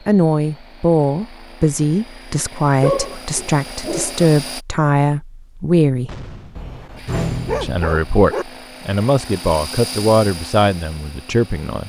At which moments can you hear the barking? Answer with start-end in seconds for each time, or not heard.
2.8-4.2, 6.5-8.4.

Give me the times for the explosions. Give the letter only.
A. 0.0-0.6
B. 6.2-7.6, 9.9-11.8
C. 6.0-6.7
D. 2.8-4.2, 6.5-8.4
C.